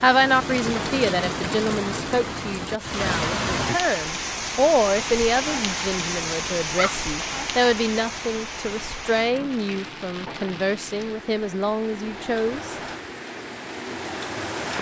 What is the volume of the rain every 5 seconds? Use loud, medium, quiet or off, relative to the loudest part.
loud, loud, medium.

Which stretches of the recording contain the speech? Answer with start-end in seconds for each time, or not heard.
0.0-12.8.